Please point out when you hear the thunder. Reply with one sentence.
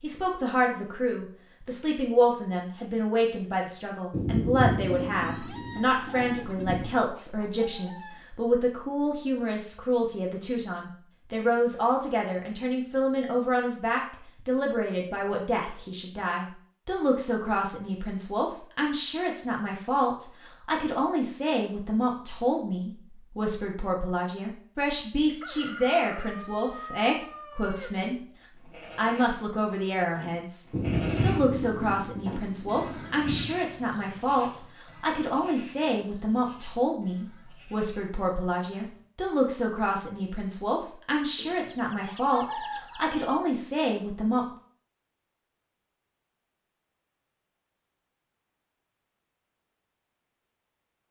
You can hear the thunder from 4.1 to 7.0 s and from 30.7 to 33.6 s.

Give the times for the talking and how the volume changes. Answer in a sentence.
The talking can be heard from 0.0 to 28.1 s, at a steady volume; and from 28.9 to 44.5 s, at a steady volume.